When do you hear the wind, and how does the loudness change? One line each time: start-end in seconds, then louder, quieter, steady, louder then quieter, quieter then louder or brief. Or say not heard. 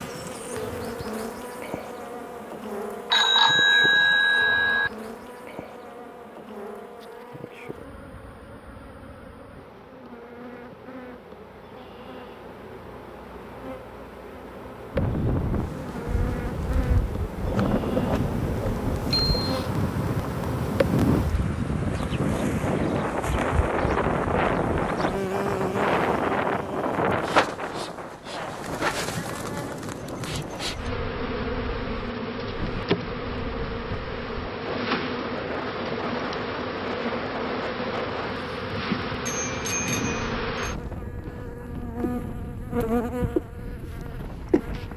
14.9-44.9 quieter.